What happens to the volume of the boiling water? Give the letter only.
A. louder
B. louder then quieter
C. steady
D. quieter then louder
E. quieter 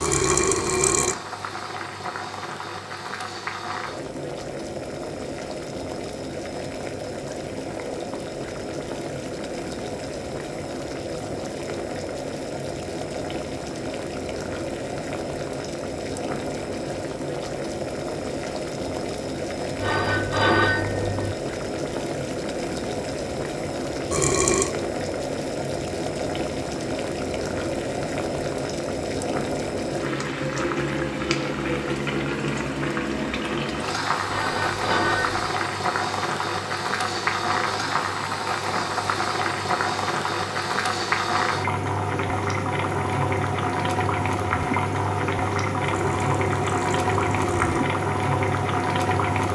A.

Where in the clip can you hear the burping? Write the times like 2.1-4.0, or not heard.
0.0-1.1, 24.1-24.7, 45.8-47.9.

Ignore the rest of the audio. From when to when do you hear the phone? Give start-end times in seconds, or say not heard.
19.8-21.4, 34.2-35.5.